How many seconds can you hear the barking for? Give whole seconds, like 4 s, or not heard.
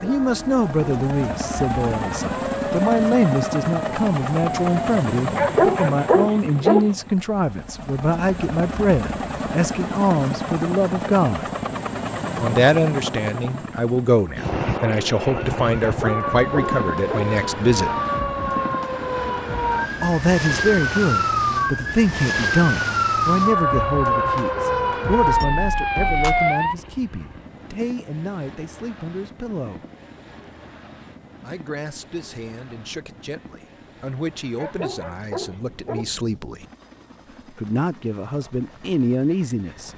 5 s.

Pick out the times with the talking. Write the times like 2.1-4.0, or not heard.
0.0-11.4, 12.4-17.9, 20.0-29.9, 31.4-36.6, 37.5-39.9.